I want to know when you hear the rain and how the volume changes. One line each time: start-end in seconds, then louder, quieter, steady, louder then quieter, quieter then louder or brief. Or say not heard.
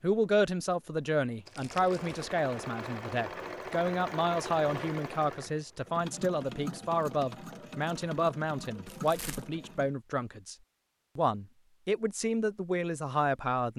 not heard.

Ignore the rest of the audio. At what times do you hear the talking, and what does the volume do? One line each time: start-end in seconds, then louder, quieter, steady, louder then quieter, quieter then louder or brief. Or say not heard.
0.0-10.6 steady
11.2-13.7 brief.